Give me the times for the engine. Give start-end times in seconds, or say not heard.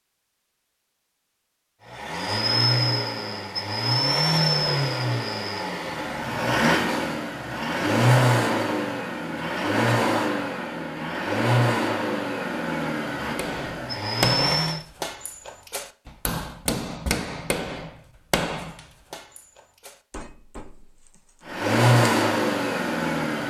1.9-14.8, 21.4-23.4.